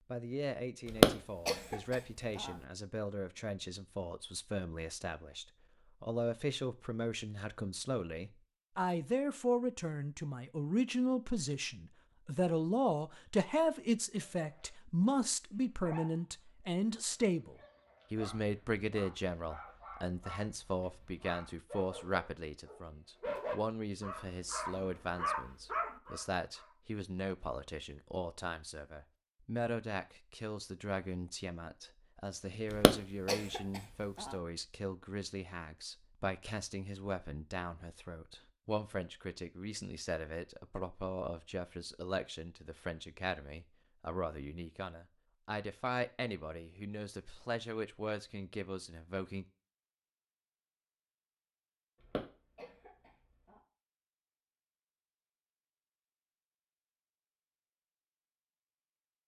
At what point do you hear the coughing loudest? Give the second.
1 s.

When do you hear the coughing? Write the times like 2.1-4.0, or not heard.
0.9-2.5, 32.7-34.4, 52.0-53.5.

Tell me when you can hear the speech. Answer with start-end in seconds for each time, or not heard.
0.1-49.5.